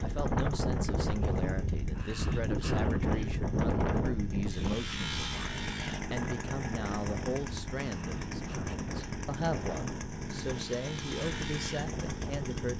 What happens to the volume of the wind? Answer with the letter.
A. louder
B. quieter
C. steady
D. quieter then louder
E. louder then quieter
B.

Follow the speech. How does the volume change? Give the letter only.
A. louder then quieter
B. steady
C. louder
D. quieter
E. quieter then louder
B.